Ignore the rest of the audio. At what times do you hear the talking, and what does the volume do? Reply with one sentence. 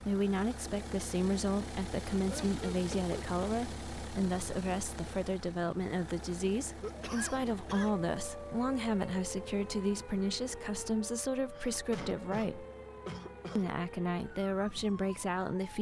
The talking can be heard from 0.0 to 12.7 s, at a steady volume; and briefly from 13.6 to 15.7 s.